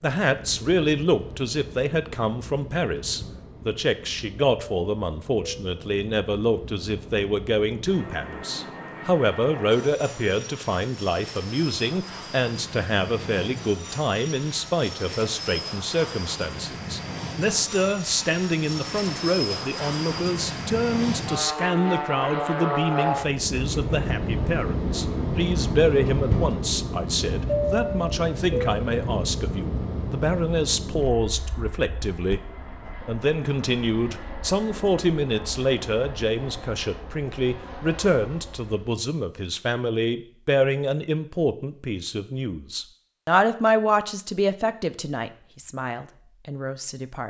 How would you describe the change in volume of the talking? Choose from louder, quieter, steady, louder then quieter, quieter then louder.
steady.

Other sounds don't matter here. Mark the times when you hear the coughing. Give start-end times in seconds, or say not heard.
not heard.